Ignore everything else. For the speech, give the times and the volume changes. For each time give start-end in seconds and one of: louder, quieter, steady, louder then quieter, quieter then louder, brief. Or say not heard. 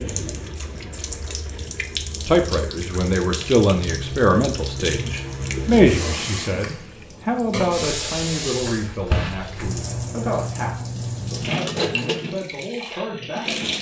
2.2-13.7 quieter.